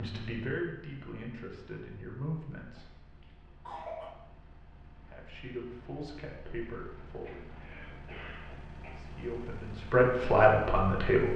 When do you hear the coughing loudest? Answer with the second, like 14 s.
4 s.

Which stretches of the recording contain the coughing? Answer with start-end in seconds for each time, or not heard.
2.8-4.2, 7.0-9.0.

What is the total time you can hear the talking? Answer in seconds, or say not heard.
8 s.